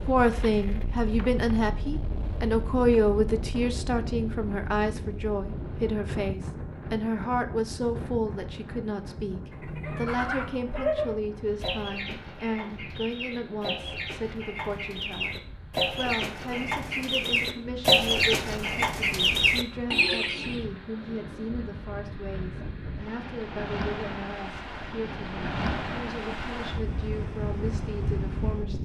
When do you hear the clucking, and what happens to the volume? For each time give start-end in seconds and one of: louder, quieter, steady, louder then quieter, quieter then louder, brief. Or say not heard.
9.5-20.6 quieter then louder.